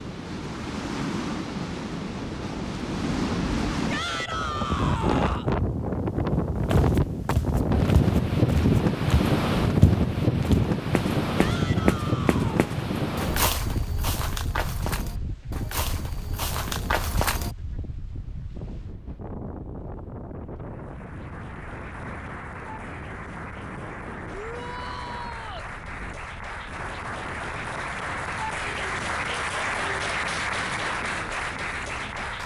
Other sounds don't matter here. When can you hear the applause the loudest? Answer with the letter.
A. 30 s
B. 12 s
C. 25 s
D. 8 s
A.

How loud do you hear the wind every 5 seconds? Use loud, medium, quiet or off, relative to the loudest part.
medium, loud, loud, quiet, quiet, quiet, quiet.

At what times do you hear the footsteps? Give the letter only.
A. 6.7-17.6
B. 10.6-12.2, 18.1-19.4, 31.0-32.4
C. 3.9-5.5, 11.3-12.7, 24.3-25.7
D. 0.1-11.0
A.